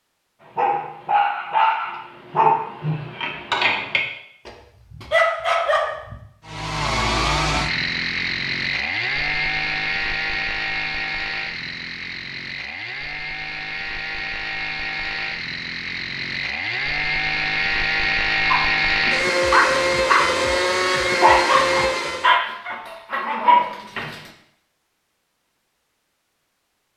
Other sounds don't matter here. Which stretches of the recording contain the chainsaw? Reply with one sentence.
The chainsaw can be heard from 6.5 to 22.4 s.